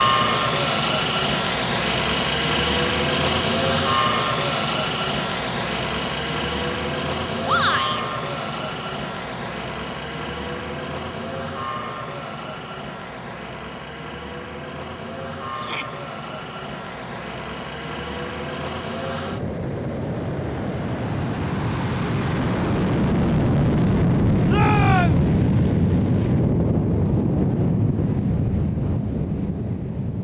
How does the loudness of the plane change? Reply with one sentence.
The volume of the plane goes down, then up.